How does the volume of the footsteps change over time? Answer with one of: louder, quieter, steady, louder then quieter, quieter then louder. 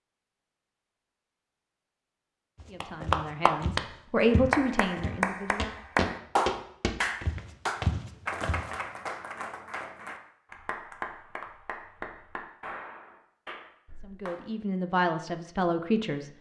louder.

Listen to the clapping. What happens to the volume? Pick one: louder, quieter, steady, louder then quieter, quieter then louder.
quieter.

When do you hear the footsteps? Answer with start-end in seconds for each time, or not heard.
2.5-8.7.